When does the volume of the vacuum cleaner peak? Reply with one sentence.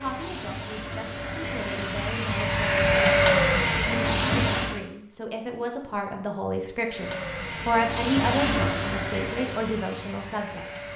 The loudest moment of the vacuum cleaner is at 3 seconds.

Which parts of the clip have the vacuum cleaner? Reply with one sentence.
You can hear the vacuum cleaner from 0.0 to 4.8 s and from 6.8 to 10.9 s.